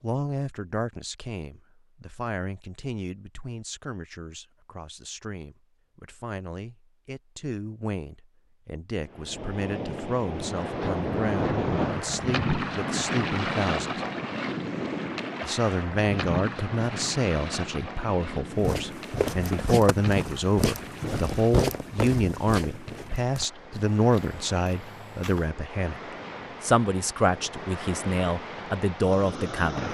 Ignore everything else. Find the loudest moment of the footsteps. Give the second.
22 s.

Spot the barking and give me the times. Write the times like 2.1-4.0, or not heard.
not heard.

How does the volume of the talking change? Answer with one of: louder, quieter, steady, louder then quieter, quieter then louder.
louder.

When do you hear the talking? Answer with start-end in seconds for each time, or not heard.
0.0-14.1, 15.4-26.0, 26.6-29.8.